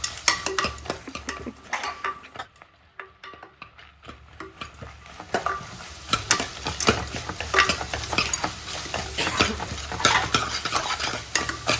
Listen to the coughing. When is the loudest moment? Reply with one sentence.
The loudest moment of the coughing is at 9 seconds.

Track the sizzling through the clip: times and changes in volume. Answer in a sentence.
You can hear the sizzling from 0.0 to 11.7 s, getting quieter then louder.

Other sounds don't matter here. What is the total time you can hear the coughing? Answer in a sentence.
The coughing can be heard for 3 seconds in total.